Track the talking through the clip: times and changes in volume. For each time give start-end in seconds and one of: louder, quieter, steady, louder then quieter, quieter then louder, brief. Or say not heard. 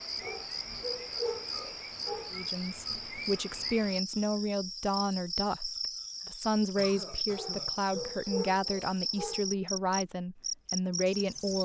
2.3-11.5 steady.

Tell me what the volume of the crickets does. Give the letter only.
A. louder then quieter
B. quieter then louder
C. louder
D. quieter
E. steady
E.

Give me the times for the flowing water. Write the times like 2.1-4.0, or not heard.
not heard.